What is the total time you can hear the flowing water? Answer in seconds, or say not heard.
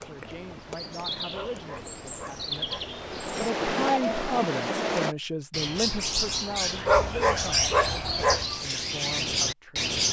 5 s.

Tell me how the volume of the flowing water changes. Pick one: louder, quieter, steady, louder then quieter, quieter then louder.
louder.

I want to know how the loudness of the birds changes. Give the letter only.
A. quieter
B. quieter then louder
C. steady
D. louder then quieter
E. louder
E.